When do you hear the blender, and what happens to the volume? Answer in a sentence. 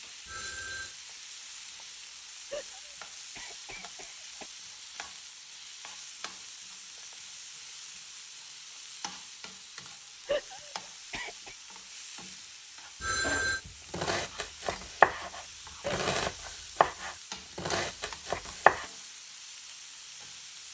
You can't hear the blender here.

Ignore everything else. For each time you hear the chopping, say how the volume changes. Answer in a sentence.
You can hear the chopping from 13.2 to 18.9 s, getting louder then quieter.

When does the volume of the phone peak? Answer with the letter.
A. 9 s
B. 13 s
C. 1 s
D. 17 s
B.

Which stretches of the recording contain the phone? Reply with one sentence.
You can hear the phone from 0.2 to 0.9 s and from 13.0 to 13.6 s.